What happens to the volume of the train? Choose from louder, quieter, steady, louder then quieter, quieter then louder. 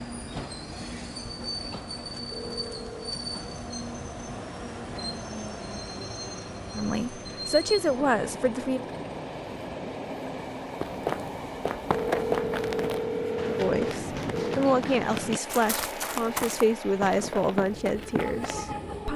steady.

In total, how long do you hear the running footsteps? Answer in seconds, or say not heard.
8 s.